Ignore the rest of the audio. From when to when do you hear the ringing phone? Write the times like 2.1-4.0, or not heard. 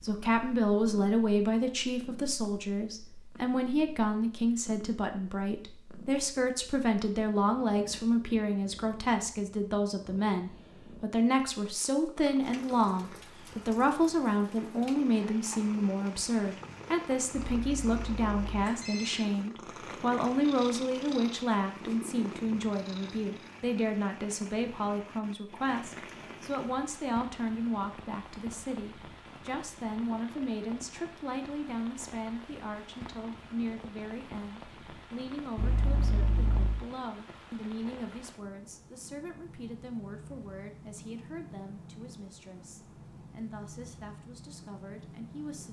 17.4-19.2, 35.5-36.8.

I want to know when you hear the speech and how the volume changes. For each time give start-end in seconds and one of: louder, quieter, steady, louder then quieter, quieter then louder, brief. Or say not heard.
0.0-45.6 quieter.